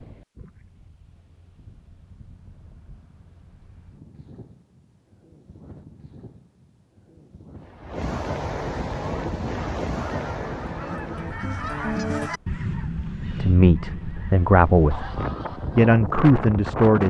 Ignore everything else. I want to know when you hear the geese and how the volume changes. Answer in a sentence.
The geese can be heard from 8.9 to 15.9 s, getting louder then quieter.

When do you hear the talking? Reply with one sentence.
The talking can be heard from 13.3 to 15.1 s and from 15.8 to 17.0 s.